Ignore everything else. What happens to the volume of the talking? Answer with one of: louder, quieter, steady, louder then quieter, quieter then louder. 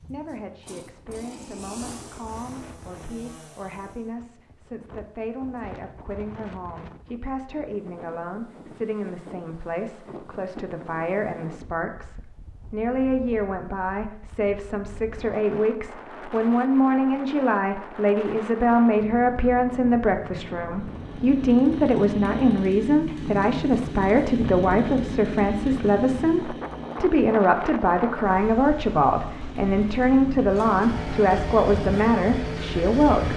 louder.